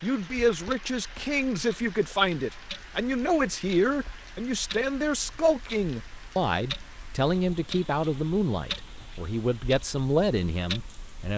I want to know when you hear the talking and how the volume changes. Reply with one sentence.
The talking can be heard from 0.0 to 11.3 s, at a steady volume.